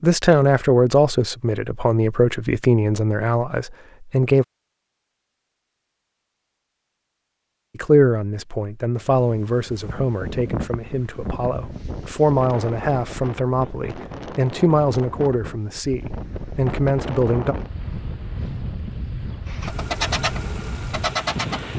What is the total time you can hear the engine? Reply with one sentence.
You can hear the engine for 2 seconds altogether.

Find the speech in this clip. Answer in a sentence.
You can hear the speech from 0.0 to 4.5 s and from 7.8 to 17.6 s.